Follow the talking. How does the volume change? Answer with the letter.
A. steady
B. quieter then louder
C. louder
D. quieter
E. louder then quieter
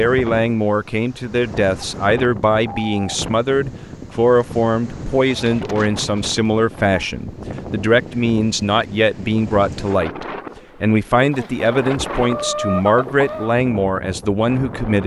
A.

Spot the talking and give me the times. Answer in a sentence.
The talking can be heard from 0.0 to 15.0 s.